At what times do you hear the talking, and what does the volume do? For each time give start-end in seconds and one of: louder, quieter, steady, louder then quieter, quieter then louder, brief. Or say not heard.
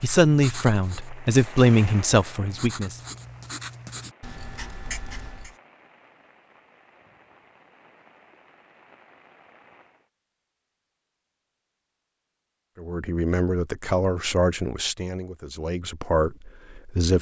0.0-3.0 brief
12.8-17.1 quieter then louder.